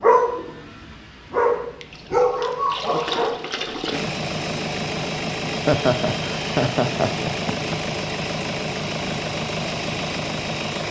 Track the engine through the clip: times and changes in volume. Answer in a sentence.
The engine can be heard from 0.0 to 10.8 s, getting louder.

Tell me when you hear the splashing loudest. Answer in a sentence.
The loudest moment of the splashing is at 3 seconds.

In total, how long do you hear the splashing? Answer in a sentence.
You can hear the splashing for 2 seconds altogether.